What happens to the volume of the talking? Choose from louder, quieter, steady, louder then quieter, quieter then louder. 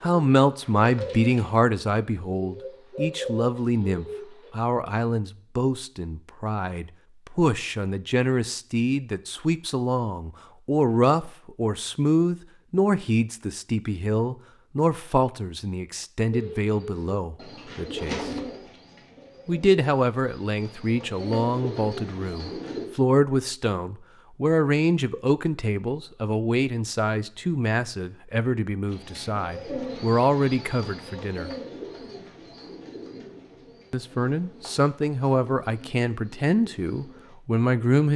steady.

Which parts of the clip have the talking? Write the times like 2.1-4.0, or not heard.
0.0-18.3, 19.4-31.5, 33.9-38.1.